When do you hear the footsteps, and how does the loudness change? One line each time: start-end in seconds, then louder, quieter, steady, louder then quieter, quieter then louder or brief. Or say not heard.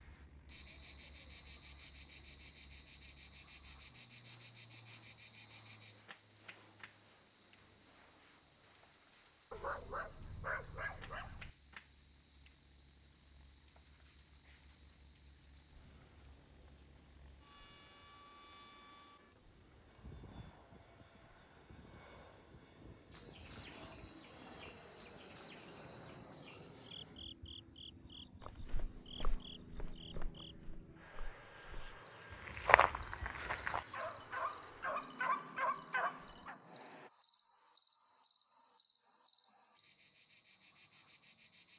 28.4-33.9 quieter then louder.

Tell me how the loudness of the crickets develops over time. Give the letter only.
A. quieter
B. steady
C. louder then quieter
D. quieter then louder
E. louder
A.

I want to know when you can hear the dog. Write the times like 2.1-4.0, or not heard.
9.5-11.5, 33.9-36.5.